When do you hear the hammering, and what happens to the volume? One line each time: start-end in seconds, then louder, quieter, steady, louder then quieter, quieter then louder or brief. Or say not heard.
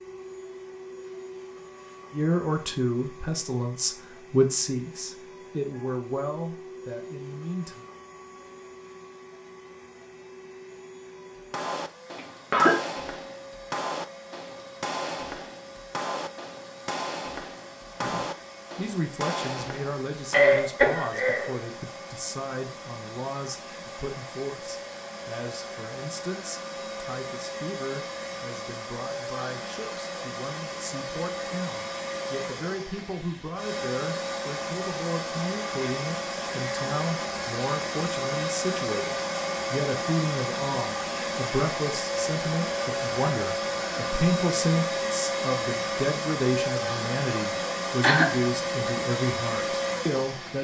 11.3-20.6 steady.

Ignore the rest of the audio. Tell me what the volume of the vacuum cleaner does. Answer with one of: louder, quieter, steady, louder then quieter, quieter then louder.
louder.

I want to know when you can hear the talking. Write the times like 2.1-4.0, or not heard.
2.1-7.8, 18.0-50.5.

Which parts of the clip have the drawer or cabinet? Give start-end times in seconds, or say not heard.
not heard.